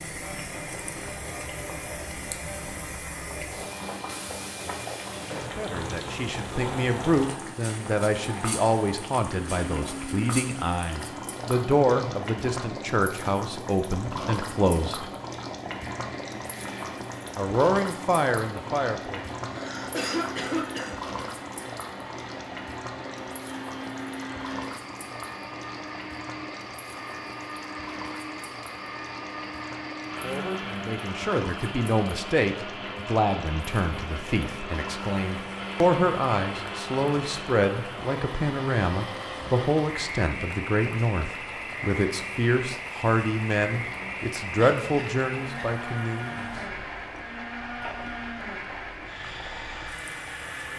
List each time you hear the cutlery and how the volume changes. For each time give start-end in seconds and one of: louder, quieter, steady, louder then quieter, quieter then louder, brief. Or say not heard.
not heard.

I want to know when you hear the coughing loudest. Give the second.
20 s.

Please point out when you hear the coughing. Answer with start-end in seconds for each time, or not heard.
19.4-20.9, 44.5-45.7.